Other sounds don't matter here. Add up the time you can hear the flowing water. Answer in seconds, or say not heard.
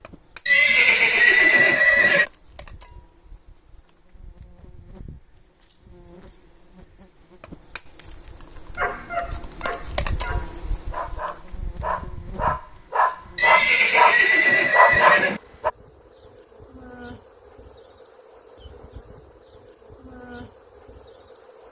not heard.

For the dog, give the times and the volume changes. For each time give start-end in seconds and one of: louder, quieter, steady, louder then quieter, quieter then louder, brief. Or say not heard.
8.8-15.7 louder.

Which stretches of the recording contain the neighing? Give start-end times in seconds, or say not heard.
0.5-2.2, 13.3-15.4.